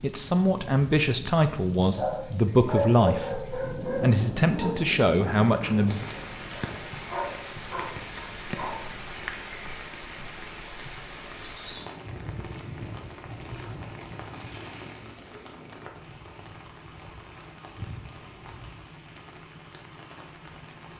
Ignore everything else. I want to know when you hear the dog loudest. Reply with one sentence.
The volume of the dog peaks at 3 seconds.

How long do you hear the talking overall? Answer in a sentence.
You can hear the talking for 6 seconds altogether.